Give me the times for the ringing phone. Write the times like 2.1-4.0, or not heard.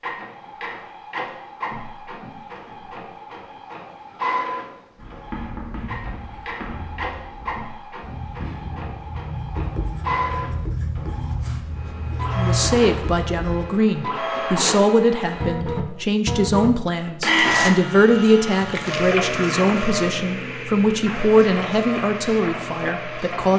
not heard.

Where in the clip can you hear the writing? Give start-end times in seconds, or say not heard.
5.0-13.7.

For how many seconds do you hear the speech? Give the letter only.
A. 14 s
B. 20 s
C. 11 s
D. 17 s
C.